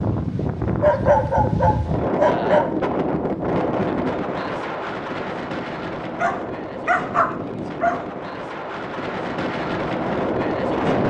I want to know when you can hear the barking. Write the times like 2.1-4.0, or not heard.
0.8-2.8, 6.2-8.1.